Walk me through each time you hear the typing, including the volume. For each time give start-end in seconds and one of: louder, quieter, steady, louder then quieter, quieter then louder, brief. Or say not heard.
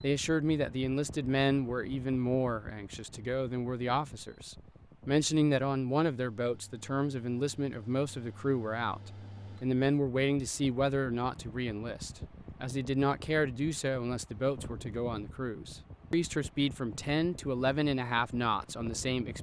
not heard.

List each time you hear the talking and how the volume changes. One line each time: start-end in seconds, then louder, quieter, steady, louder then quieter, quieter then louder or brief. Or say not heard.
0.0-19.3 steady.